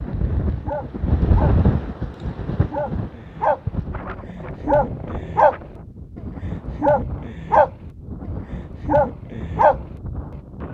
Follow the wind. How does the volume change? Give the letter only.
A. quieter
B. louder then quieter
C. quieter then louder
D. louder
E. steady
A.